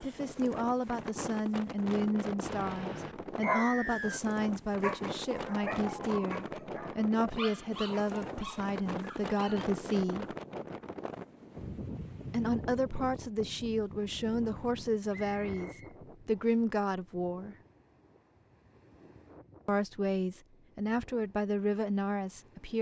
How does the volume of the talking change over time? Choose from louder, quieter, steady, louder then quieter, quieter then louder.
steady.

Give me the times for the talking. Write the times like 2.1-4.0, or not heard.
0.0-10.3, 12.3-17.6, 19.6-22.7.